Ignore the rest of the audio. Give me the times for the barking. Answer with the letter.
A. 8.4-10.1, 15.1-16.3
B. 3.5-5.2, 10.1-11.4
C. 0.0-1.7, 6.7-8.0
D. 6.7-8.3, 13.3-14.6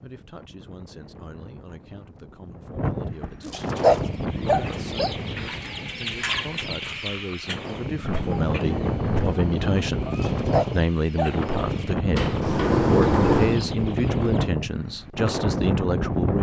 B.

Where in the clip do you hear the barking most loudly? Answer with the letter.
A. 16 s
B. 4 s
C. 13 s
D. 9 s
B.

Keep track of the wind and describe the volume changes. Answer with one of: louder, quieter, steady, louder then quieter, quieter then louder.
louder.